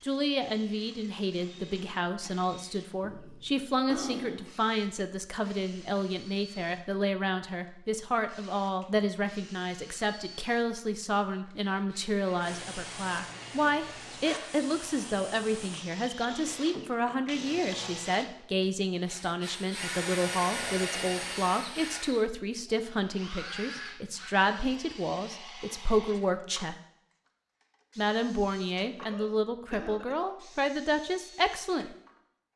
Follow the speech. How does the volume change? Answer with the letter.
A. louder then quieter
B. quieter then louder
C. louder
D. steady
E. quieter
D.